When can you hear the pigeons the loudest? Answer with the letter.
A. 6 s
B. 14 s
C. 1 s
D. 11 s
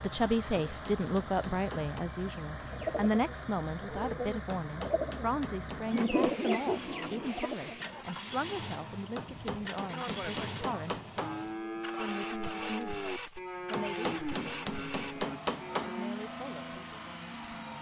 A.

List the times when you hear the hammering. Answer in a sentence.
The hammering can be heard from 0.2 to 2.0 s, from 4.5 to 6.6 s, from 9.2 to 11.3 s and from 13.7 to 15.9 s.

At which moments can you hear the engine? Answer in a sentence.
The engine can be heard from 0.0 to 17.7 s.